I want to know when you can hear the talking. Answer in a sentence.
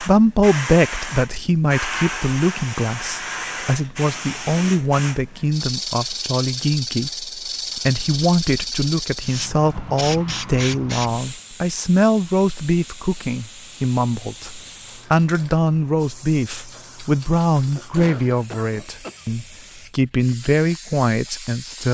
The talking can be heard from 0.0 to 21.8 s.